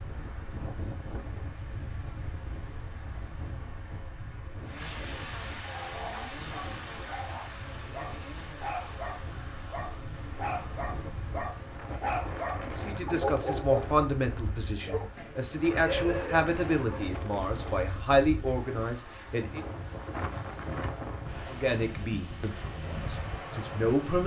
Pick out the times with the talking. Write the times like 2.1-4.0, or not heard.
12.8-19.6, 21.4-24.2.